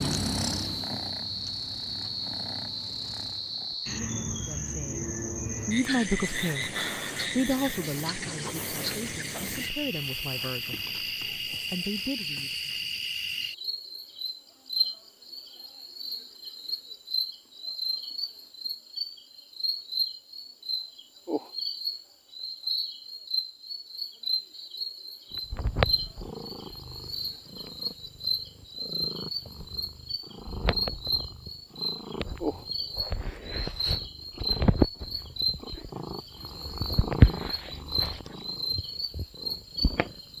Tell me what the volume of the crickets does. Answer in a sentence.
The volume of the crickets stays about the same.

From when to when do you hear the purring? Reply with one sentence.
You can hear the purring from 0.0 to 3.8 s and from 25.5 to 40.3 s.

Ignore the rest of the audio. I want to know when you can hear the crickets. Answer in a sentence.
You can hear the crickets from 0.0 to 40.3 s.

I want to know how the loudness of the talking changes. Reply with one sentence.
The loudness of the talking goes up, then down.